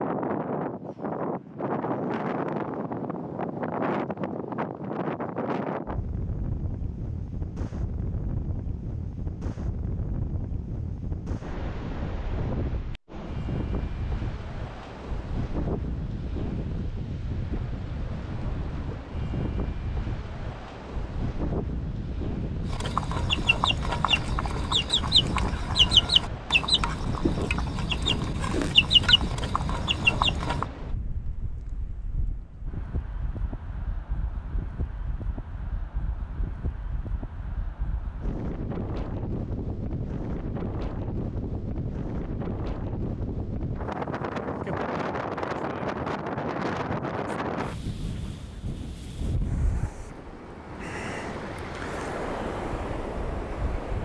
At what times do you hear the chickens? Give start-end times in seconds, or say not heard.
22.6-30.6.